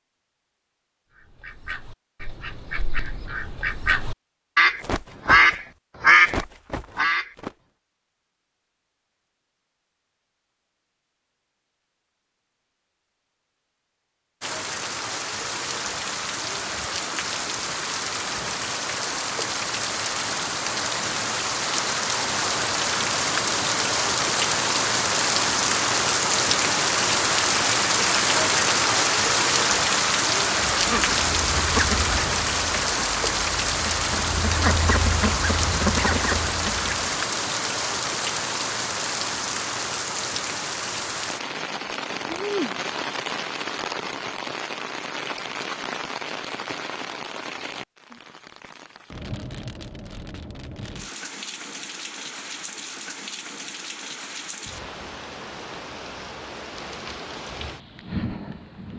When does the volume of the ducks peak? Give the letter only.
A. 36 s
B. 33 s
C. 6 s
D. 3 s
C.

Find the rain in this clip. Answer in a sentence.
You can hear the rain from 14.4 to 58.9 s.